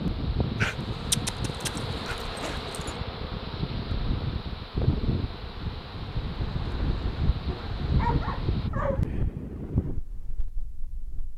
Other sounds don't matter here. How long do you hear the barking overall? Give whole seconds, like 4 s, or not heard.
4 s.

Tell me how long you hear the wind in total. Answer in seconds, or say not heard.
11 s.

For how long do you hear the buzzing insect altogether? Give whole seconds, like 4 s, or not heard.
9 s.